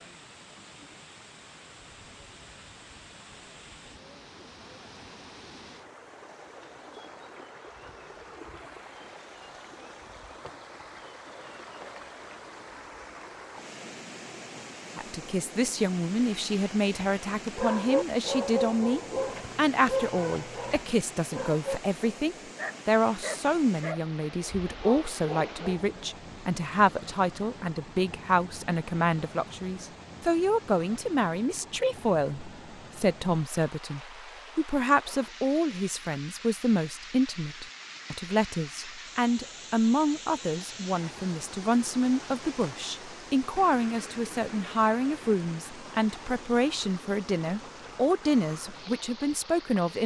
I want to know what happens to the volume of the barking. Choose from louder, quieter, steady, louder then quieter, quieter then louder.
quieter.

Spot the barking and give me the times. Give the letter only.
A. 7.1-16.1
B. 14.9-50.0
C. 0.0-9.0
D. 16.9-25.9
D.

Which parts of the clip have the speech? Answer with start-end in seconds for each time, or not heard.
14.9-50.0.